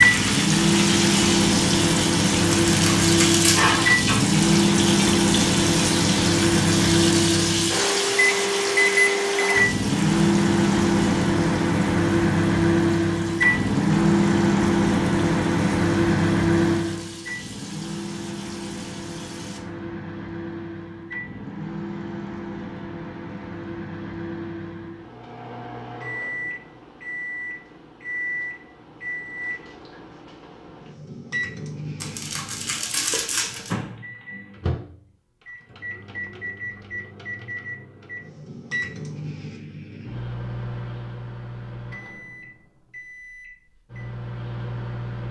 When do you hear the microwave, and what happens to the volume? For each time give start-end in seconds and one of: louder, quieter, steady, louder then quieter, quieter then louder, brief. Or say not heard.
0.0-45.2 quieter.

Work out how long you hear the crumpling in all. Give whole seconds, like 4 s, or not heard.
3 s.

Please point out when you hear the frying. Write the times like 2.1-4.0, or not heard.
0.0-19.6.